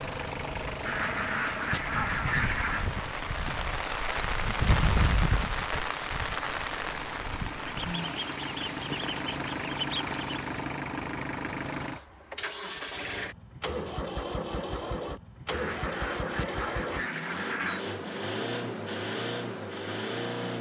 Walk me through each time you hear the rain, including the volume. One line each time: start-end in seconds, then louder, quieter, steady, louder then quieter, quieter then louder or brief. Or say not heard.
0.0-10.7 louder then quieter.